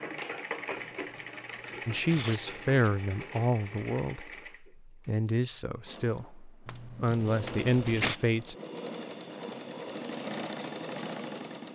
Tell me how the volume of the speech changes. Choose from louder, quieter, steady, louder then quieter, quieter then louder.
quieter then louder.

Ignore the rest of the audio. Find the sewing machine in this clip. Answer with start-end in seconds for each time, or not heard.
0.0-11.7.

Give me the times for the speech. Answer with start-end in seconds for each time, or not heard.
1.9-8.6.